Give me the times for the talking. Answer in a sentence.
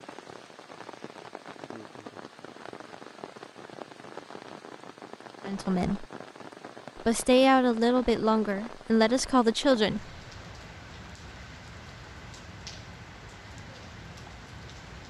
The talking can be heard from 5.5 to 6.0 s and from 7.0 to 10.1 s.